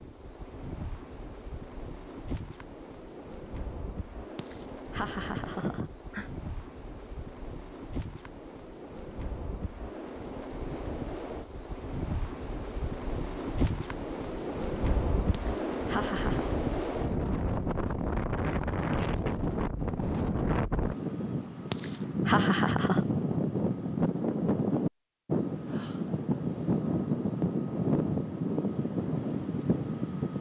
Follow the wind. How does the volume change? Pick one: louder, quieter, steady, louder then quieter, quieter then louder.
louder.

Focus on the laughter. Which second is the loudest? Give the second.
22 s.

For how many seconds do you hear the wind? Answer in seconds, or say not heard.
30 s.